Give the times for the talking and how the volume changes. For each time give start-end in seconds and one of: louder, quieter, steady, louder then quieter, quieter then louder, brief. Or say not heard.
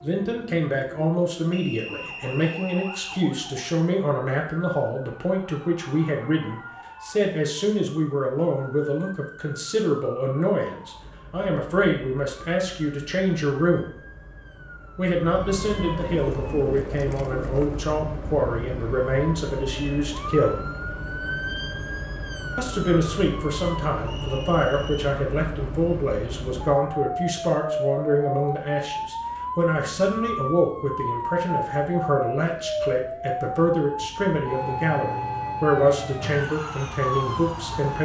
0.0-13.9 steady
14.9-20.6 steady
22.6-38.0 steady.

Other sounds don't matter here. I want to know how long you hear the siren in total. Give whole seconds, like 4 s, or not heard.
38 s.